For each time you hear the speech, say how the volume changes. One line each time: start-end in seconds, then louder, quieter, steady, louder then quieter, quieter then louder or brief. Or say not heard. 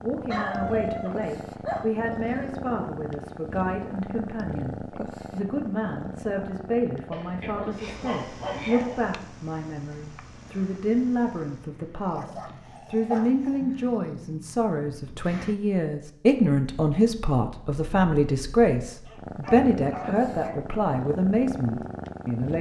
0.0-22.5 louder.